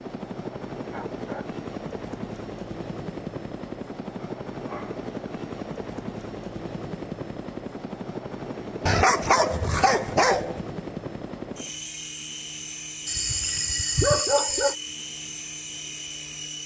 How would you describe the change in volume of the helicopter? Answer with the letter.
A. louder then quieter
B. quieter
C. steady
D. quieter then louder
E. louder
C.